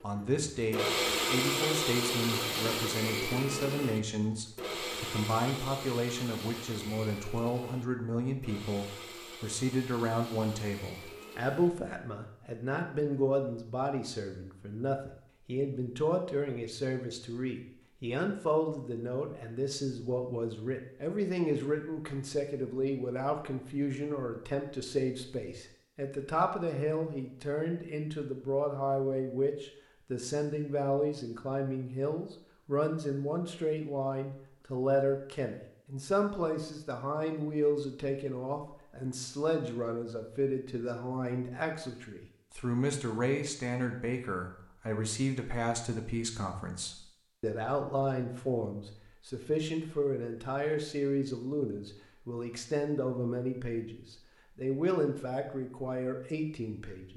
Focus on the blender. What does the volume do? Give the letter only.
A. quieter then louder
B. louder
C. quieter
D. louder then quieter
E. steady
C.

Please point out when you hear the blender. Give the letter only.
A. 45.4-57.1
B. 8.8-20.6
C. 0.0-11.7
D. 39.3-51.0
C.